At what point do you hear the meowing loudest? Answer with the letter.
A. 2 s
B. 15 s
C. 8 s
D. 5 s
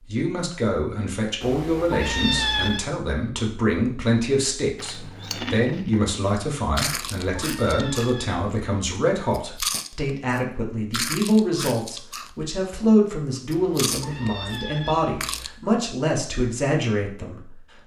A.